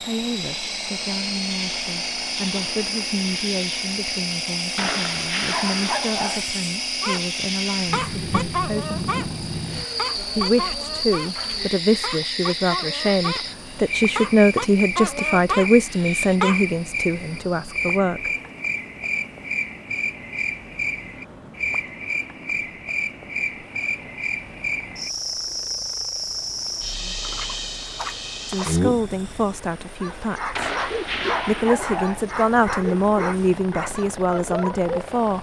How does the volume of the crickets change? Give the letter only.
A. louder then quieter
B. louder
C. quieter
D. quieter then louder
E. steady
E.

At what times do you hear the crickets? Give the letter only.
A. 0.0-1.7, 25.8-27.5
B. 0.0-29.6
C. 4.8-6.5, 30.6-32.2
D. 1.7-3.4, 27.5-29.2
B.